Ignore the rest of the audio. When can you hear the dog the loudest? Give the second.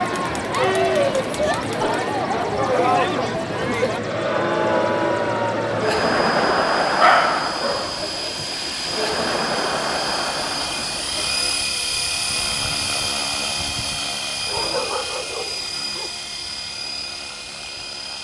7 s.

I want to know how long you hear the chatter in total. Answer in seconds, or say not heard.
11 s.